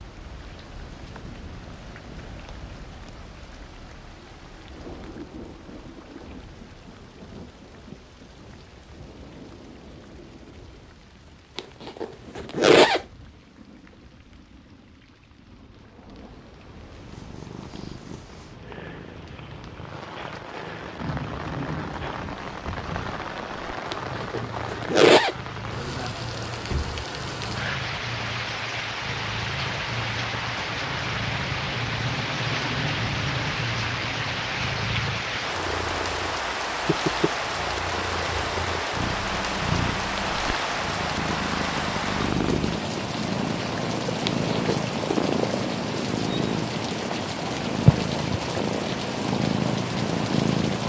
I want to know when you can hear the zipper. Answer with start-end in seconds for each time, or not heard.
11.6-13.1, 23.9-25.4, 44.2-44.8.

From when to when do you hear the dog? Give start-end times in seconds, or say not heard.
not heard.